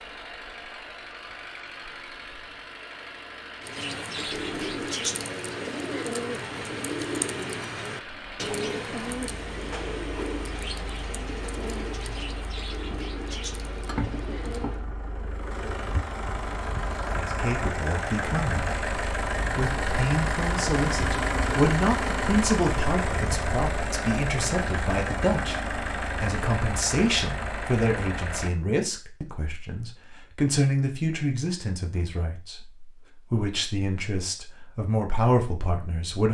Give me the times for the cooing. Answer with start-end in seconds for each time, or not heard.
3.6-14.8.